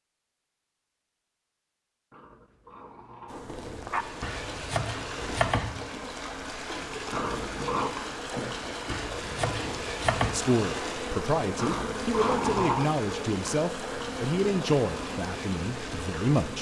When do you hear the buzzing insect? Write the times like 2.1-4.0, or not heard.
3.2-16.5.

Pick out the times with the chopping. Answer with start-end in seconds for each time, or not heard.
4.2-5.9, 8.9-10.4.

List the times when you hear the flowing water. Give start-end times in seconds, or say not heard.
3.8-16.5.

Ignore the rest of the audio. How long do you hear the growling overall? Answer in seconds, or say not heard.
4 s.